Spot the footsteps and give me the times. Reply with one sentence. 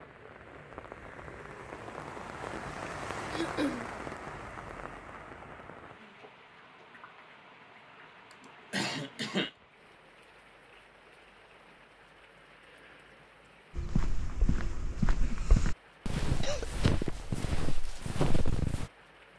You can hear the footsteps from 13.8 to 18.9 s.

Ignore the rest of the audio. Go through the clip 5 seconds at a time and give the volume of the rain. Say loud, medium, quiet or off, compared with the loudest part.
loud, medium, quiet, quiet.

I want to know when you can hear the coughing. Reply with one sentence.
The coughing can be heard from 3.3 to 3.9 s, from 8.7 to 9.5 s and from 16.4 to 17.4 s.